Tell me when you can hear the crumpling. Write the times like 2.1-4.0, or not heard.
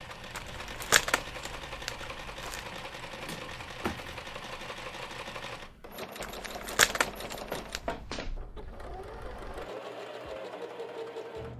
0.3-2.6, 6.2-8.0.